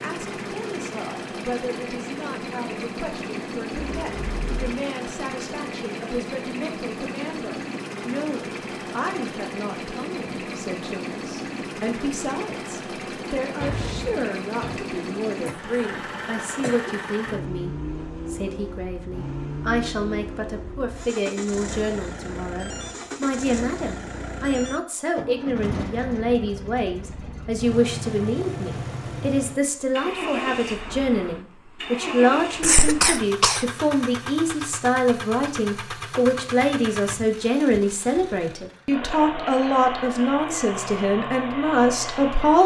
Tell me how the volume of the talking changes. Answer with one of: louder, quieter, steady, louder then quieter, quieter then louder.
louder.